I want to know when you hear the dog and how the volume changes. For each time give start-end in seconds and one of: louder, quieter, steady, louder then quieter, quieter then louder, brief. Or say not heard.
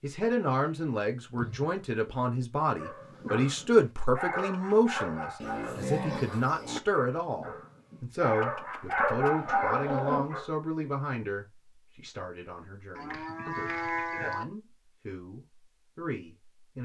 2.8-10.5 quieter then louder.